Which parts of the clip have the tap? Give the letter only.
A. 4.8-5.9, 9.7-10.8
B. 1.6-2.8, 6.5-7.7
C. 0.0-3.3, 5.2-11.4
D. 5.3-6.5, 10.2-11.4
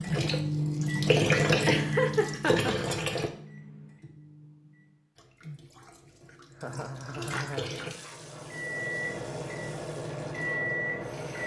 C.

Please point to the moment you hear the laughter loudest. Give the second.
2 s.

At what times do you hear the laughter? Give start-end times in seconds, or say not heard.
1.6-2.8, 6.5-7.7.